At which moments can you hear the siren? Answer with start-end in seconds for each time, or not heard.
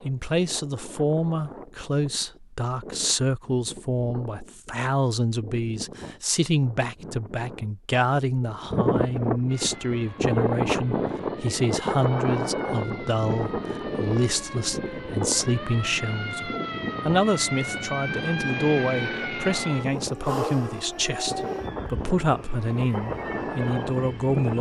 9.4-24.5.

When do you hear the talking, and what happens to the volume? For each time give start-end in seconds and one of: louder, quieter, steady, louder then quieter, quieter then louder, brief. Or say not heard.
0.0-24.5 steady.